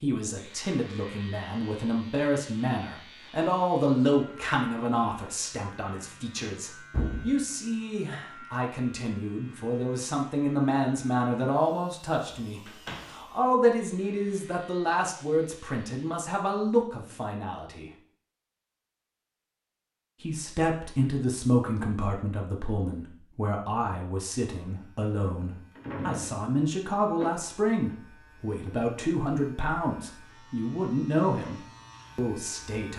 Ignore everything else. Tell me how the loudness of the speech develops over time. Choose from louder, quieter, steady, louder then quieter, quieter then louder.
steady.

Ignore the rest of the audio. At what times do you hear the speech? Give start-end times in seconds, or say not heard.
0.0-17.9, 20.2-32.9.